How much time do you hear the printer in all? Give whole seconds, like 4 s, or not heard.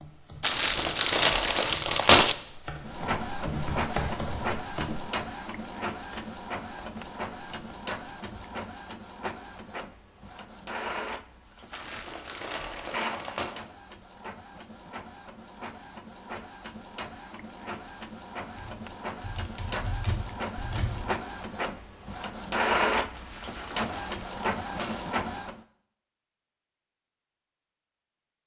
23 s.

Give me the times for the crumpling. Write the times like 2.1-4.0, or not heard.
0.4-2.4, 11.7-13.6, 23.1-25.1.